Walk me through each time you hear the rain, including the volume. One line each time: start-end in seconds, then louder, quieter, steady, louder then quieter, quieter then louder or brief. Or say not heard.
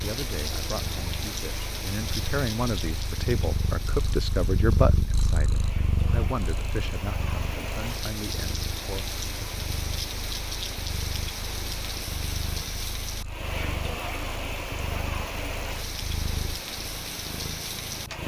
0.0-18.2 quieter then louder.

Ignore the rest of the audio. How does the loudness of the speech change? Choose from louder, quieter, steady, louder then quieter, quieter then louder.
louder then quieter.